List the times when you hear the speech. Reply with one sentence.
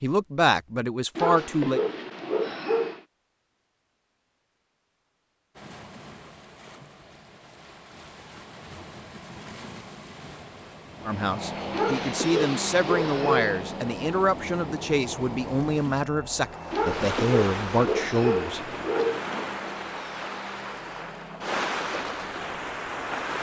The speech can be heard from 0.0 to 1.8 s and from 11.1 to 18.6 s.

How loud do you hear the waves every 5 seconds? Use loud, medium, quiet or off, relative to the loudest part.
off, quiet, quiet, loud, loud.